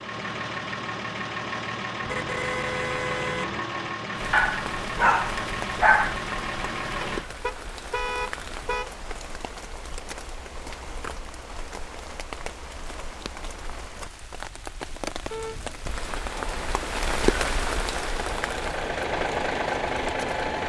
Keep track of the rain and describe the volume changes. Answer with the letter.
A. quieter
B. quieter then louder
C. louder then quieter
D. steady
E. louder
E.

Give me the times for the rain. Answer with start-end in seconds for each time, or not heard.
4.2-20.5.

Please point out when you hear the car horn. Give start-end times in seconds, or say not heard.
2.0-3.6, 7.2-8.9, 15.3-15.8.